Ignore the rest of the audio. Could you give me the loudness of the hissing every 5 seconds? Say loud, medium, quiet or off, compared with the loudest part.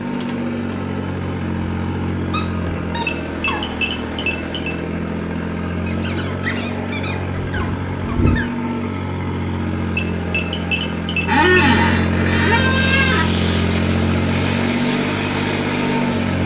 off, off, loud, loud.